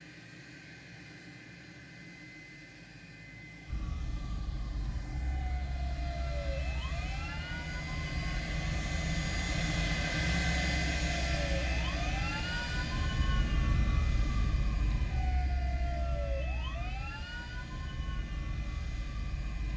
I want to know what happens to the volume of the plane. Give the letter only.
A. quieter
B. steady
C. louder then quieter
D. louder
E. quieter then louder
C.